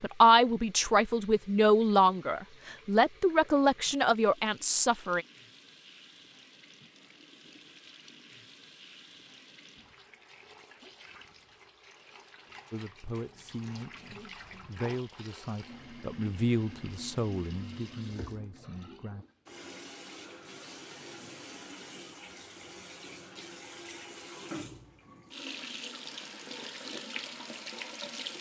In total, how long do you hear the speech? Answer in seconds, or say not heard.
12 s.